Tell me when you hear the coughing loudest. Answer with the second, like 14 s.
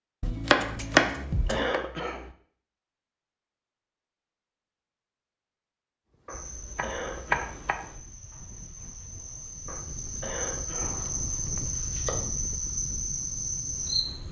2 s.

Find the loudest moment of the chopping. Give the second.
1 s.